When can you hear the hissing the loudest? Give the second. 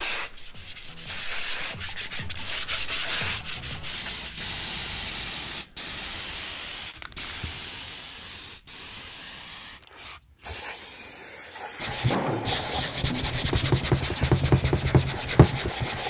5 s.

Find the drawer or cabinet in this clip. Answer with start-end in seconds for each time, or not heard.
12.1-13.4.